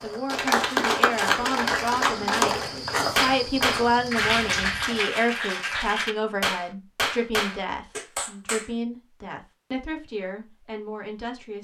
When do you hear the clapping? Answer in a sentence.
You can hear the clapping from 0.2 to 8.7 s.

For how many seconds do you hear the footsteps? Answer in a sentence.
You can hear the footsteps for 5 seconds altogether.